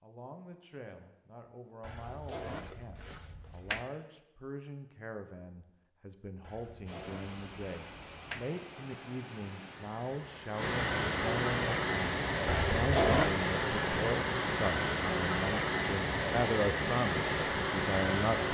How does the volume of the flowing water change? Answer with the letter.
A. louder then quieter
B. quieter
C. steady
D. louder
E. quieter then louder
D.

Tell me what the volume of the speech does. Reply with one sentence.
The loudness of the speech goes up.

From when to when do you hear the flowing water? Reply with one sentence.
The flowing water can be heard from 6.8 to 18.4 s.